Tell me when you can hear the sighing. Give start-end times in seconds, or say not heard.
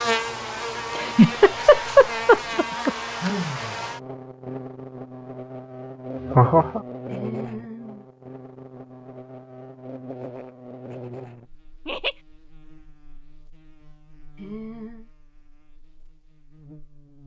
3.2-3.9, 7.1-8.1, 14.3-15.1.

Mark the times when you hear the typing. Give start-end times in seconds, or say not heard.
not heard.